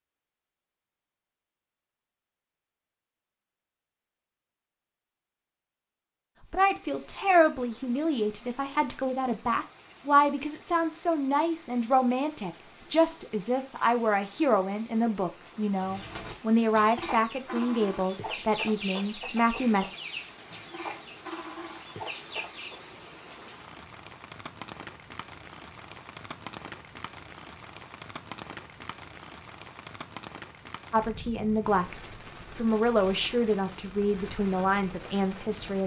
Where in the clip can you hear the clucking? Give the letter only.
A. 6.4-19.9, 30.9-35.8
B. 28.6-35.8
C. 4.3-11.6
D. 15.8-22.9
D.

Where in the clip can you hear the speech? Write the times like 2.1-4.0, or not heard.
6.4-19.9, 30.9-35.8.